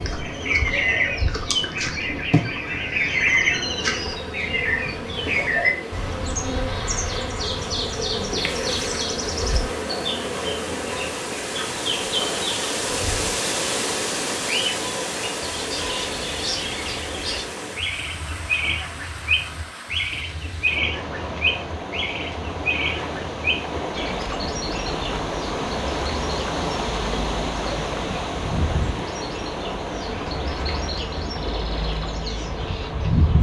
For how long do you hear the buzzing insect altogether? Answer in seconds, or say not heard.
11 s.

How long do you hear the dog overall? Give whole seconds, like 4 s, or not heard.
not heard.